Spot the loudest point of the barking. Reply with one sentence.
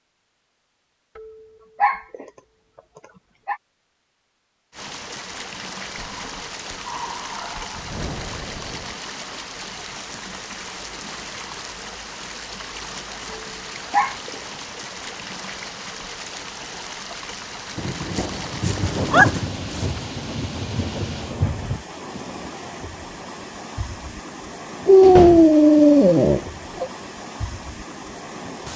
The volume of the barking peaks at 25 seconds.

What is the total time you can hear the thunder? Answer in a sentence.
You can hear the thunder for 5 seconds altogether.